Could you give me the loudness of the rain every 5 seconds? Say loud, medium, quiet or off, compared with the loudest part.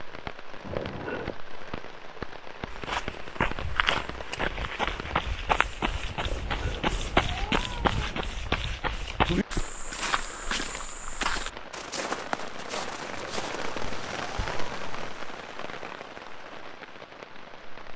loud, medium, loud, loud.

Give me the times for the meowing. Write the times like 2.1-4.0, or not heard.
0.6-1.4, 6.2-8.2, 13.1-15.1.